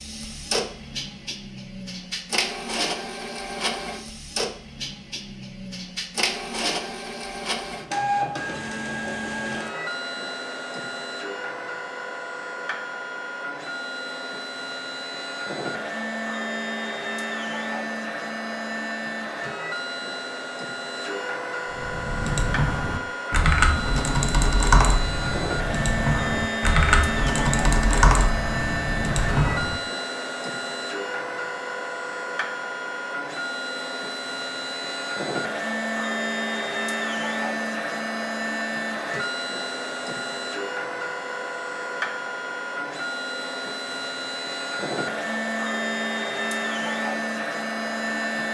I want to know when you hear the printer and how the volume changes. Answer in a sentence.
You can hear the printer from 0.0 to 48.4 s, at a steady volume.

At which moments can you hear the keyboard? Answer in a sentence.
The keyboard can be heard from 21.8 to 29.8 s.